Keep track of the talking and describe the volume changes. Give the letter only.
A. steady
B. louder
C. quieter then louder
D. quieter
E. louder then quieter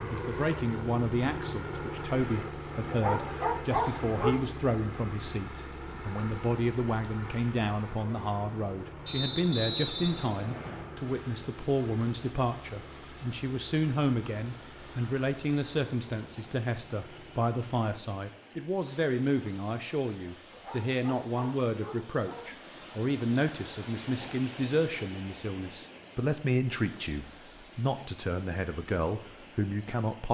A.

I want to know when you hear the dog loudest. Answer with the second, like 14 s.
4 s.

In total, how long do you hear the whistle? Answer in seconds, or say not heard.
2 s.